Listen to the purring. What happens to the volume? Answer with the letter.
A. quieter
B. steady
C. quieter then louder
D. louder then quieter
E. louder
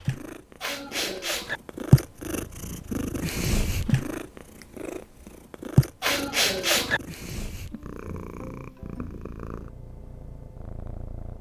A.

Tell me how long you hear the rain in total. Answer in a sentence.
The rain can't be heard in this clip.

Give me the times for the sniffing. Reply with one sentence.
The sniffing can be heard from 0.6 to 1.6 s and from 6.0 to 7.0 s.